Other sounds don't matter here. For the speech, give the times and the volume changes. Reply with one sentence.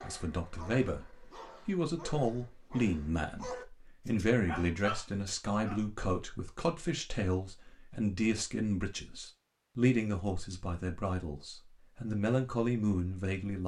The speech can be heard briefly from 0.0 to 1.1 s; and from 1.6 to 13.6 s, at a steady volume.